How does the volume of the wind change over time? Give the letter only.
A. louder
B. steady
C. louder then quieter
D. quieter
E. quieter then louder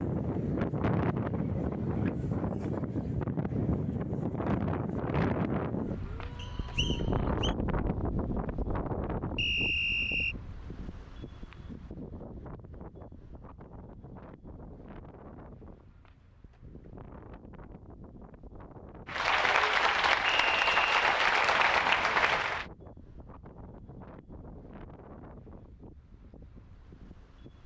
D.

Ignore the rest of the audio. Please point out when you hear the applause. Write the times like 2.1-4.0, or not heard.
19.1-22.6.